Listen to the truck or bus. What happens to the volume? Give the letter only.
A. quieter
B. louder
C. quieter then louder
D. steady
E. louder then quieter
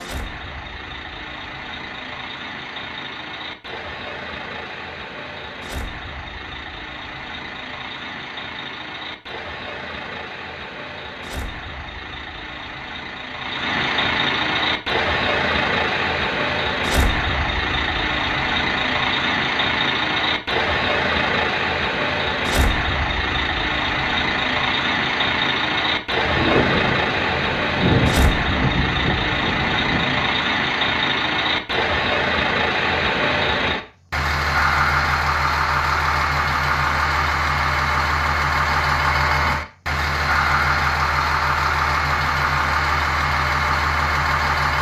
B.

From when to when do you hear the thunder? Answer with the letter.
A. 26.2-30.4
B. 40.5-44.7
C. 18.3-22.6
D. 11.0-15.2
A.